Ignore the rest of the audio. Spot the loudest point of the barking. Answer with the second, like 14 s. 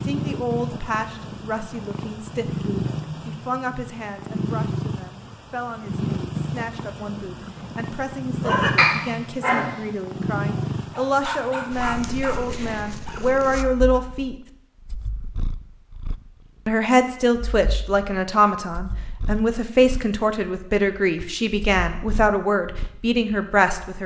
9 s.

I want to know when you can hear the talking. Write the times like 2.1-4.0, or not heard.
0.1-14.3, 16.6-24.0.